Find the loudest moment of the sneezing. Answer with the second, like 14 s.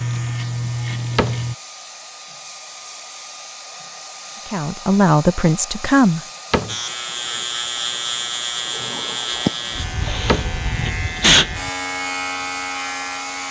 11 s.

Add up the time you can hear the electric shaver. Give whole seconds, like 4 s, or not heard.
8 s.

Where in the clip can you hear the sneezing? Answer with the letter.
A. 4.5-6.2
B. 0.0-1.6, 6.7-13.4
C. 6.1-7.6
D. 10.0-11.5
D.